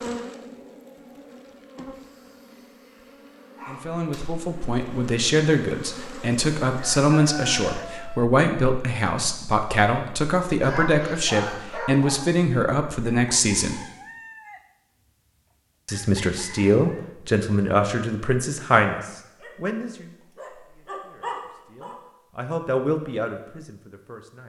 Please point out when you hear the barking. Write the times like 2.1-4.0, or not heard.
1.9-4.2, 10.6-12.3, 19.4-21.9.